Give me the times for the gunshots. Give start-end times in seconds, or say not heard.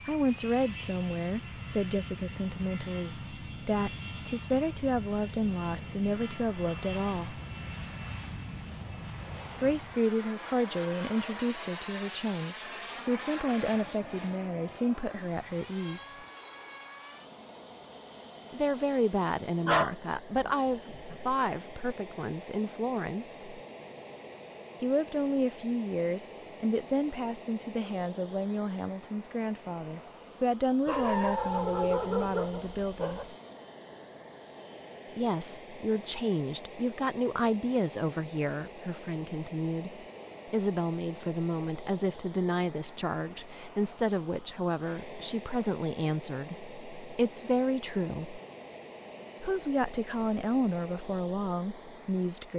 not heard.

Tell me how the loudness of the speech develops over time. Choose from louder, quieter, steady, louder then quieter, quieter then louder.
steady.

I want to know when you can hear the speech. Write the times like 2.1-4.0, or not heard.
0.1-7.4, 9.6-16.1, 18.5-23.4, 24.8-33.3, 35.1-48.4, 49.4-52.5.